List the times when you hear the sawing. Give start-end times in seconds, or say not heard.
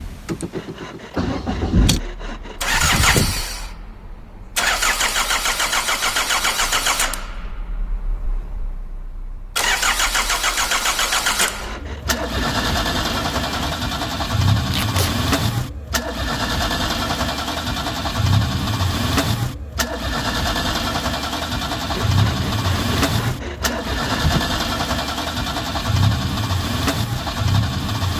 0.5-3.5, 11.3-13.8, 21.9-24.4.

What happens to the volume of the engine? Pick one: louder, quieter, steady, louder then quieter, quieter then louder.
steady.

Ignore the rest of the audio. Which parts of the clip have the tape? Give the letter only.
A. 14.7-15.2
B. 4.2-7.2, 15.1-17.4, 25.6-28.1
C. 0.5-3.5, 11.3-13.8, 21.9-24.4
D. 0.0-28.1
A.